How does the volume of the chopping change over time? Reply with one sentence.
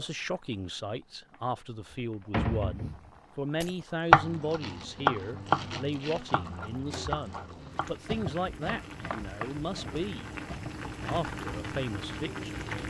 The volume of the chopping goes down.